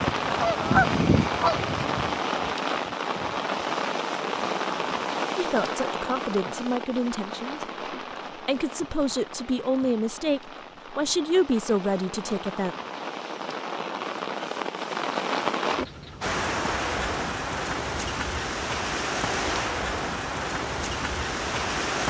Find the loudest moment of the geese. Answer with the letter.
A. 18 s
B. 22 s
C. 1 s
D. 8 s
C.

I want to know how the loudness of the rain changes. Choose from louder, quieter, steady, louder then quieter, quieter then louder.
quieter then louder.